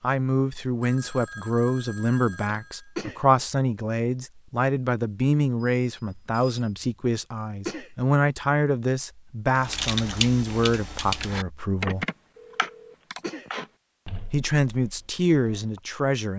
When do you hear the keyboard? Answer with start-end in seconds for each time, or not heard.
9.6-15.8.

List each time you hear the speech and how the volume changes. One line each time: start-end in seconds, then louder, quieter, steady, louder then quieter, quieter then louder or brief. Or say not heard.
0.0-12.1 steady
14.2-16.3 brief.